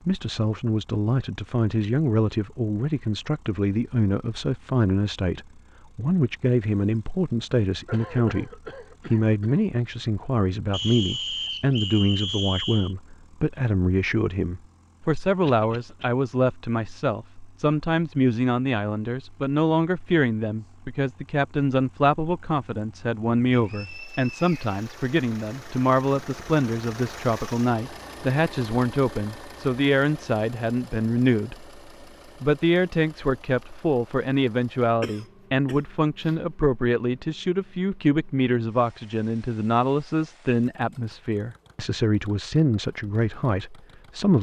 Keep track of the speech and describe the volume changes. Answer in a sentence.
The loudness of the speech stays about the same.